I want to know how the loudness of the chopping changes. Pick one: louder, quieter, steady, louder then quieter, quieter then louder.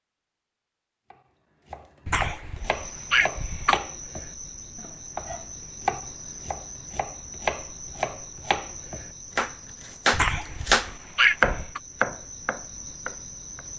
louder.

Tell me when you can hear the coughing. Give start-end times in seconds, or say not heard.
2.0-3.8, 10.1-11.8.